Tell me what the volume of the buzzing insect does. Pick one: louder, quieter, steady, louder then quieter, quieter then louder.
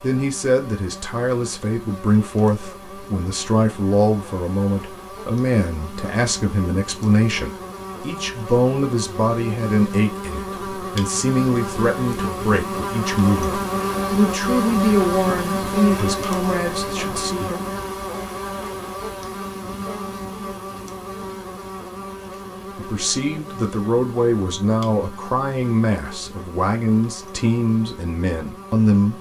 louder then quieter.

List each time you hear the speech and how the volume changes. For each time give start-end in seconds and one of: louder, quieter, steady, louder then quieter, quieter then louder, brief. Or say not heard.
0.0-17.6 steady
22.8-29.1 steady.